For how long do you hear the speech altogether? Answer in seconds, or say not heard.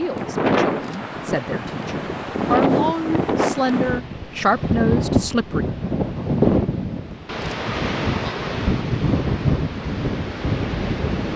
6 s.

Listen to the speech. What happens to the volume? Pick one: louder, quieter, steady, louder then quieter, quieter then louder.
louder.